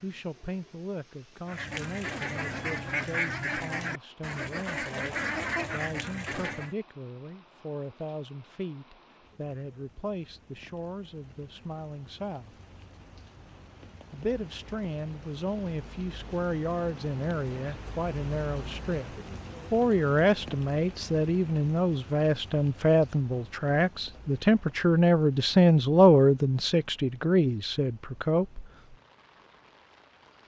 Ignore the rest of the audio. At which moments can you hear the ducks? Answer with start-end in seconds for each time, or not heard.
1.4-6.8.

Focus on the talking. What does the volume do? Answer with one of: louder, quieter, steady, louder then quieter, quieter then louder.
louder.